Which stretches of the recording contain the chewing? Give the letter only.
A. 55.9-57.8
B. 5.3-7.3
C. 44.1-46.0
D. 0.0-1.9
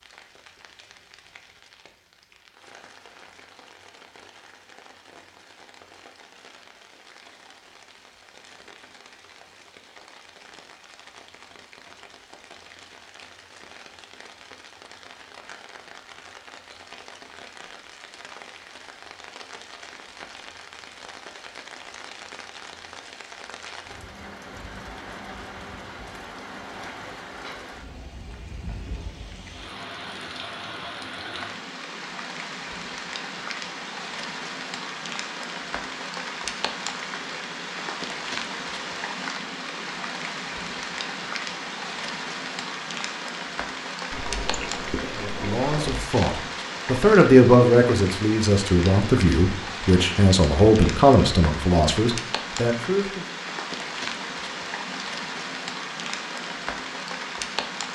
C.